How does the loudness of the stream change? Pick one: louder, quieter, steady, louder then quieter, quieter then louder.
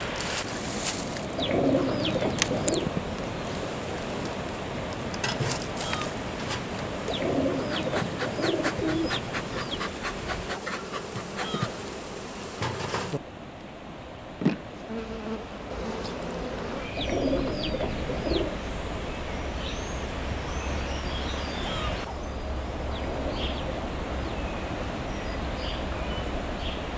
quieter then louder.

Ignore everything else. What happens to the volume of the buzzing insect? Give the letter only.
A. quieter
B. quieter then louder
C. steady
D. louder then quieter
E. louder
A.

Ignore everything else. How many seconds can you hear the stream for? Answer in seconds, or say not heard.
27 s.